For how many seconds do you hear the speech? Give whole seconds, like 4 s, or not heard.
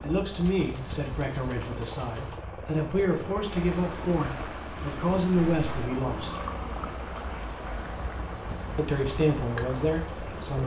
8 s.